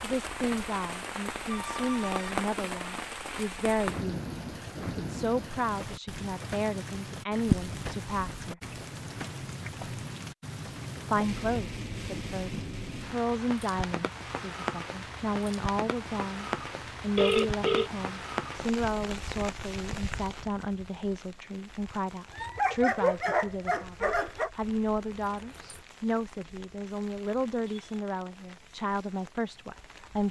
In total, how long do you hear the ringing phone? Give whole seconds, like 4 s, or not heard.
2 s.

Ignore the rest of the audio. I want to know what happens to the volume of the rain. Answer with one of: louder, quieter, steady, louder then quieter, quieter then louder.
quieter.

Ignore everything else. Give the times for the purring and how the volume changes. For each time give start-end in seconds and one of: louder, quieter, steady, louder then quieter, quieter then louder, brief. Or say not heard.
not heard.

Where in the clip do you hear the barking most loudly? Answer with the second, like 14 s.
23 s.